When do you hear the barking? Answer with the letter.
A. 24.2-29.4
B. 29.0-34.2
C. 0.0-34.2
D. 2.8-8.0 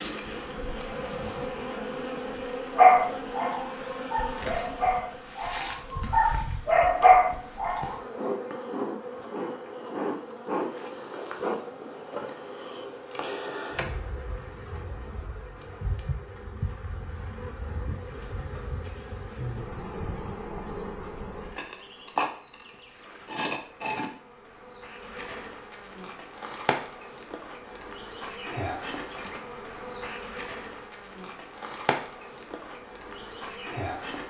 D.